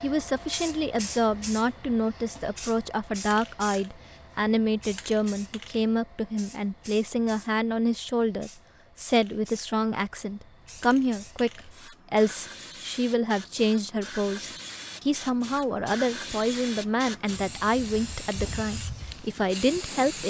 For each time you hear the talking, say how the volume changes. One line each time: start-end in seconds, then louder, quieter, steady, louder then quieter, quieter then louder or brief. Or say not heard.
0.0-20.2 steady.